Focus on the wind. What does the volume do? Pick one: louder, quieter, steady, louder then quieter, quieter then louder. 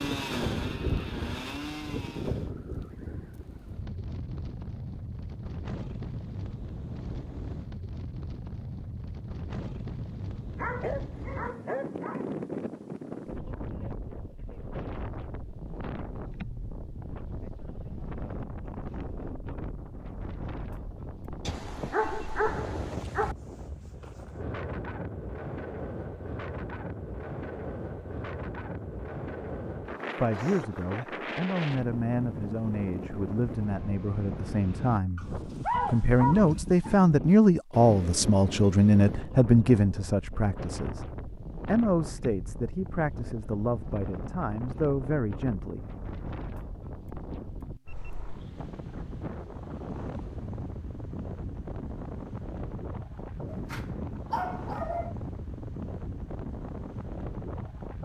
steady.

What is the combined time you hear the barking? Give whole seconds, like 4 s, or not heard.
7 s.